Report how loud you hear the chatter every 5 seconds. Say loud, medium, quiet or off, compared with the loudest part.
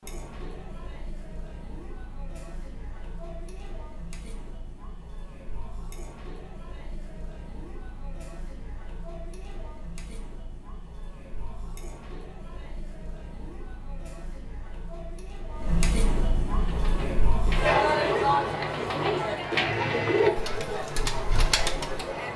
quiet, quiet, quiet, loud, medium.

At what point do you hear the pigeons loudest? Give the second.
20 s.